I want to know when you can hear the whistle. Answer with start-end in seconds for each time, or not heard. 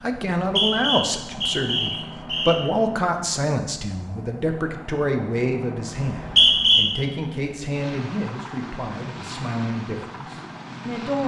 0.3-2.6, 6.0-6.8.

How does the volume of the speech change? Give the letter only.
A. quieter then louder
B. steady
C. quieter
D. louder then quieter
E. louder
C.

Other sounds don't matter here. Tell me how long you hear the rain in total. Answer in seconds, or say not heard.
not heard.